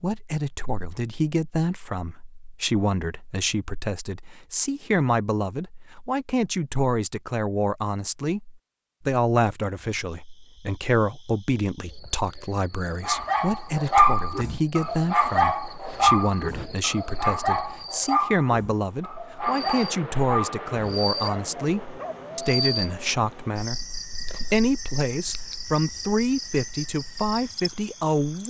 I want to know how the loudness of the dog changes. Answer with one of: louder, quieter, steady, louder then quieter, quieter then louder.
quieter.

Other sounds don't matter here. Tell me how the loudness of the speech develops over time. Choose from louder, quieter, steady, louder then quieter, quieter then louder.
steady.